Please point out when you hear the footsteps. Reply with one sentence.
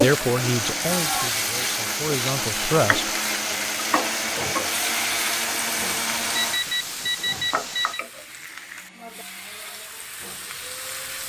The footsteps can't be heard in this clip.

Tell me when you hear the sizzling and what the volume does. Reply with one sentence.
The sizzling can be heard from 0.0 to 11.2 s, getting quieter.